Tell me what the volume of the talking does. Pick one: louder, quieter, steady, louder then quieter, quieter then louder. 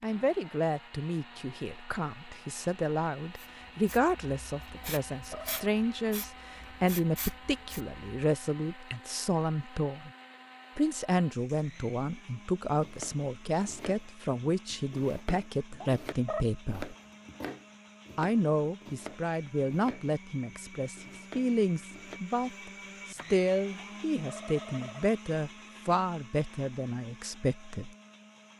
steady.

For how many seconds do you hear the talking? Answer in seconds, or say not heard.
26 s.